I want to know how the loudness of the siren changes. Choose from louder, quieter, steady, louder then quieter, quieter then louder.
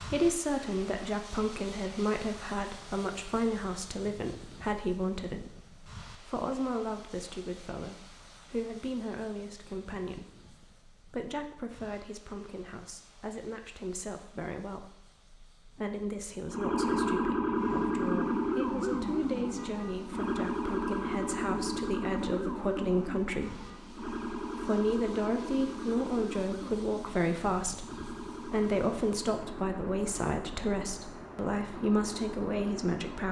quieter.